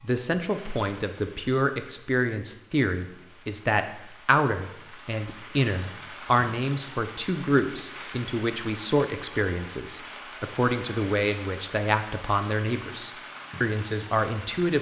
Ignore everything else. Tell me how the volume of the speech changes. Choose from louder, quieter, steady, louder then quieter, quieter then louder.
steady.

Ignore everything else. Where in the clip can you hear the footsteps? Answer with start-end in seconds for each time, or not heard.
not heard.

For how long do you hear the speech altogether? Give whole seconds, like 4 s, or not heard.
15 s.